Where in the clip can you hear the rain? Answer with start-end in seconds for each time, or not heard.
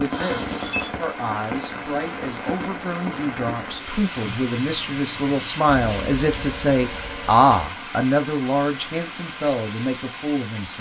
0.0-10.7.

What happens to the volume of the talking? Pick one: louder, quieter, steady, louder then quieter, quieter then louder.
louder then quieter.